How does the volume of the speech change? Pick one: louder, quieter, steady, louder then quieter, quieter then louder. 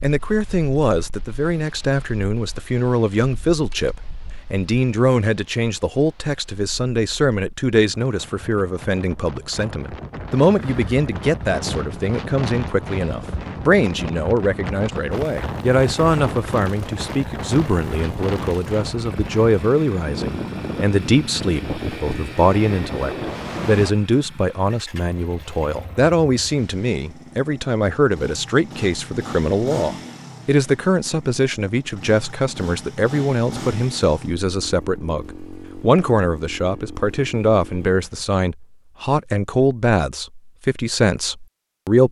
steady.